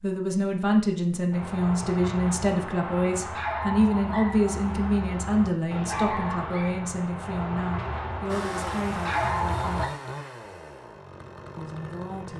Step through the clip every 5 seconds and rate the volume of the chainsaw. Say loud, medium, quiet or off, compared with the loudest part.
off, loud, medium.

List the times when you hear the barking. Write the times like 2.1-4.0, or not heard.
1.3-9.9.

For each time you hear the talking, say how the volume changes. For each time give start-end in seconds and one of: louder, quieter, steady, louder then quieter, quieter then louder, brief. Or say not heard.
0.0-9.9 quieter
11.6-12.3 brief.